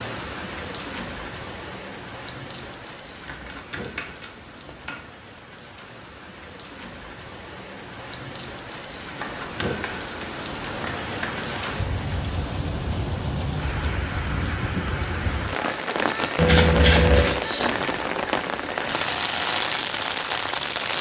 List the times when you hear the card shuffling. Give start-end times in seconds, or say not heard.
3.2-5.0, 9.2-11.5, 16.4-17.4.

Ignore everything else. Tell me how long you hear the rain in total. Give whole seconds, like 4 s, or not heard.
21 s.